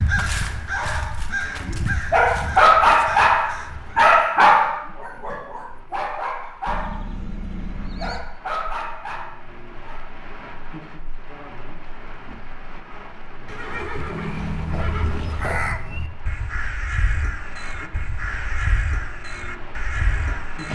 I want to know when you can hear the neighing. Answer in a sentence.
The neighing can be heard from 6.7 to 8.2 s and from 13.4 to 15.5 s.